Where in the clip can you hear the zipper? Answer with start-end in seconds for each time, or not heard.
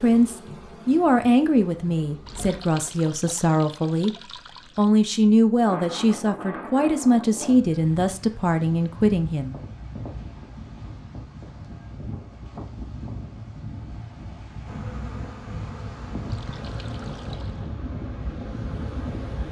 not heard.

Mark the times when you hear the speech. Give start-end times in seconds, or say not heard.
0.0-9.6.